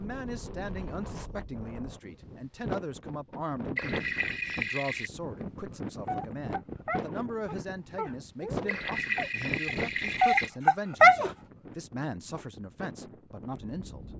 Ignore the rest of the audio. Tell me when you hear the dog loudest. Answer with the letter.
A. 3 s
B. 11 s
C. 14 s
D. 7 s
B.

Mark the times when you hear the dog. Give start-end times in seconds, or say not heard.
6.0-11.3.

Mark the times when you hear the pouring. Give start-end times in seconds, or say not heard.
3.8-5.1, 8.7-10.5.